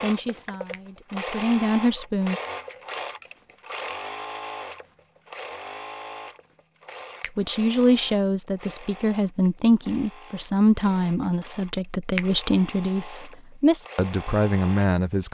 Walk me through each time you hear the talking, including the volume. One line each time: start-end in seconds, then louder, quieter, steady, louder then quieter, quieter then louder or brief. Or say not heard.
0.0-2.4 brief
7.2-15.3 steady.